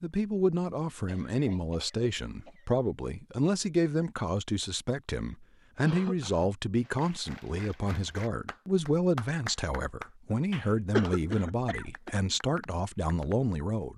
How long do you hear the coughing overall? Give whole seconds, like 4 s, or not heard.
4 s.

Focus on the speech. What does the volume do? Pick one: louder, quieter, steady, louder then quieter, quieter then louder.
steady.